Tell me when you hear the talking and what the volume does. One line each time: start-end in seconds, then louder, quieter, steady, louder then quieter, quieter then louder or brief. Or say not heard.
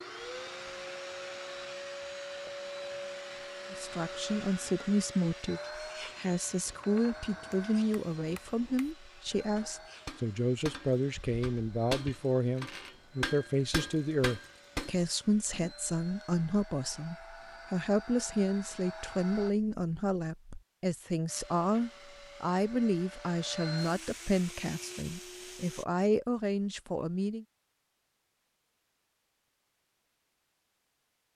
3.7-27.4 steady.